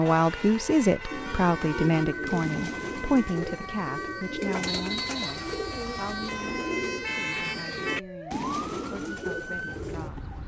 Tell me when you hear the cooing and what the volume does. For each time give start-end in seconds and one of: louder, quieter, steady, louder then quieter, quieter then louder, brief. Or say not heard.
1.1-10.1 steady.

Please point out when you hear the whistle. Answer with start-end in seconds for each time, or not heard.
4.7-5.5.